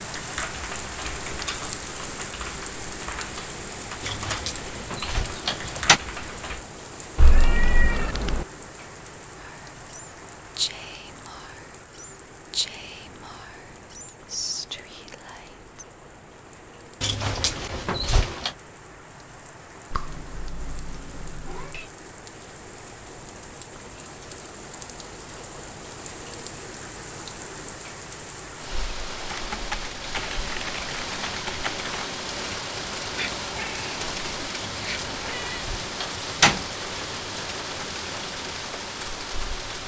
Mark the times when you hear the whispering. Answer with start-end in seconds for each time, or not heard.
9.4-15.8.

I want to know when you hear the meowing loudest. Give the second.
8 s.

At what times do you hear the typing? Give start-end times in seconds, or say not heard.
0.0-6.7, 29.2-31.9.